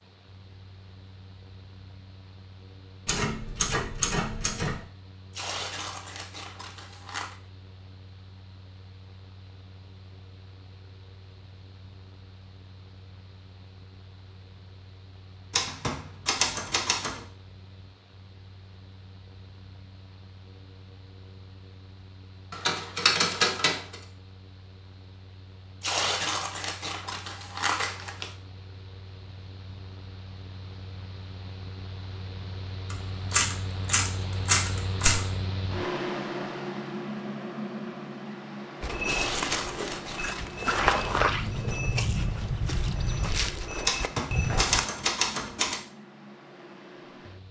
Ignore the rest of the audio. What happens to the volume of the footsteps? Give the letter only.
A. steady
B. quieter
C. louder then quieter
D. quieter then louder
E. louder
C.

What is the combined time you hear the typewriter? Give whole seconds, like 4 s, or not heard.
9 s.